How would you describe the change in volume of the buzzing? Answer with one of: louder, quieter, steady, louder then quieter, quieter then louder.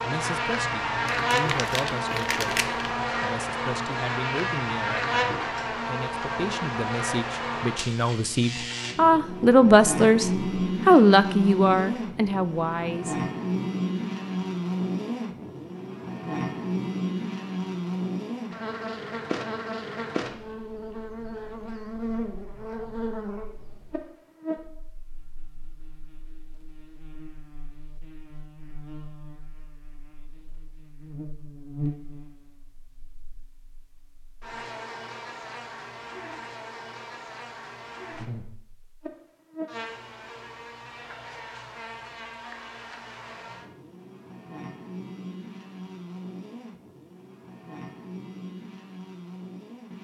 quieter.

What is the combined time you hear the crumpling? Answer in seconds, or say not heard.
2 s.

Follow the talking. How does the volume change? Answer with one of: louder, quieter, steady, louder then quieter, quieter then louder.
louder.